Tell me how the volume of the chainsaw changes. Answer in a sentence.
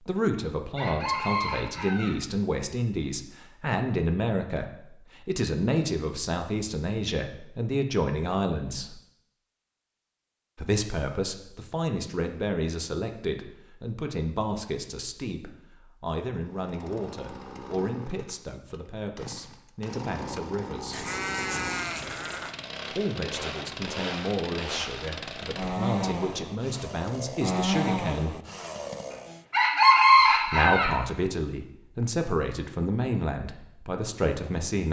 The volume of the chainsaw goes up.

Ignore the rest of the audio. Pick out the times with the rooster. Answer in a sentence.
You can hear the rooster from 0.8 to 2.1 s and from 29.5 to 30.9 s.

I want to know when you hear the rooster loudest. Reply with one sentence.
The volume of the rooster peaks at 30 seconds.